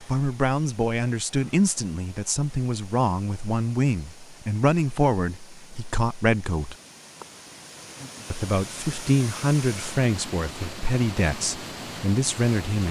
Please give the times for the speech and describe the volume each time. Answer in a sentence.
You can hear the speech from 0.0 to 6.8 s, at a steady volume; and from 8.3 to 12.8 s, getting quieter then louder.